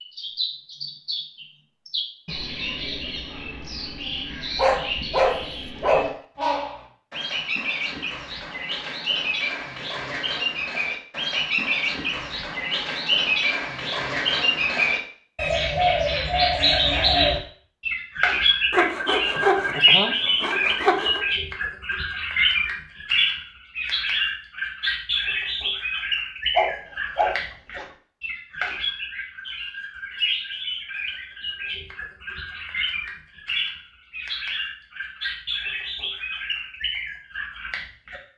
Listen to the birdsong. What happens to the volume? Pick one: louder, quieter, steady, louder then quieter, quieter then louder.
louder then quieter.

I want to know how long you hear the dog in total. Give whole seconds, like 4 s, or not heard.
3 s.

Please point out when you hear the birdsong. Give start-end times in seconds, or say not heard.
0.0-38.2.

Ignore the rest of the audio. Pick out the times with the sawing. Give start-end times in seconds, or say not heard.
18.7-21.2.